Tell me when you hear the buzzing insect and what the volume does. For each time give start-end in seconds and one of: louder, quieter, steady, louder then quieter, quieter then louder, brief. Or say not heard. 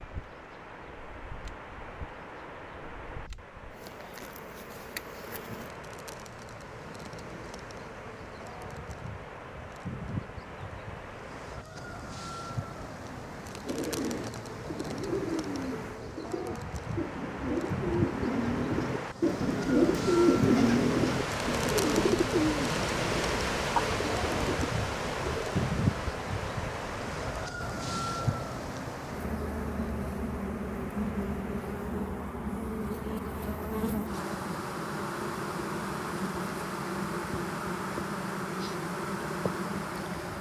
0.0-40.3 louder.